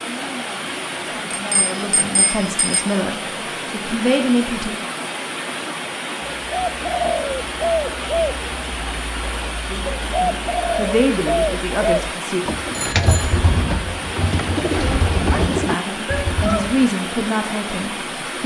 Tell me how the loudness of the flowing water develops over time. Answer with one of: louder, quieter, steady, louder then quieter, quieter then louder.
steady.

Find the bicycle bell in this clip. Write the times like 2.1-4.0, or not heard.
1.3-2.9, 12.7-13.3.